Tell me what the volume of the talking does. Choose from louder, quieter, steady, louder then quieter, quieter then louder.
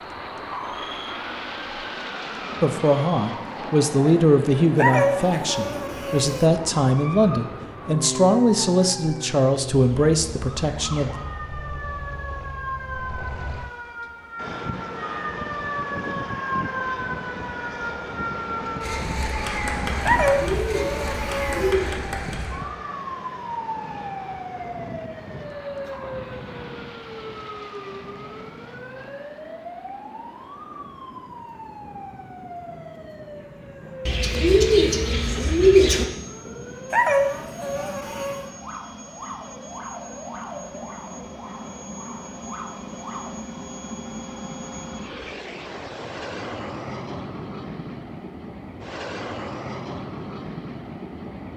steady.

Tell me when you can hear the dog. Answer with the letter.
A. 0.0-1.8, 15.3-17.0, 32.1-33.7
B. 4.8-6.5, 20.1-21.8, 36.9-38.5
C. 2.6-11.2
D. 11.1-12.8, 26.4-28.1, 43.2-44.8
B.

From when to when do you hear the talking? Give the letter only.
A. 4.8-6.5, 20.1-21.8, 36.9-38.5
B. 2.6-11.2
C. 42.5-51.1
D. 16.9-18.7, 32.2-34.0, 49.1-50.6
B.